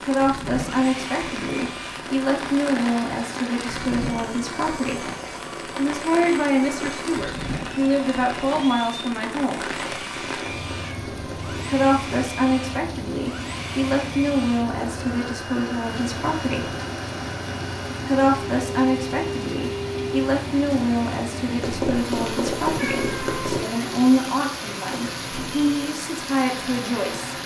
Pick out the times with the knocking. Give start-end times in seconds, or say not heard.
not heard.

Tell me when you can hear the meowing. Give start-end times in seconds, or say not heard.
6.6-7.0, 9.7-11.7, 21.6-23.6.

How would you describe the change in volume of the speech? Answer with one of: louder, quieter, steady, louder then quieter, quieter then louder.
steady.